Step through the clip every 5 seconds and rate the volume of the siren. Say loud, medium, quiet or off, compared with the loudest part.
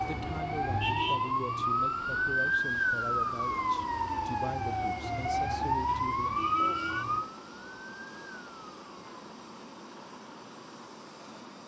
loud, loud, off.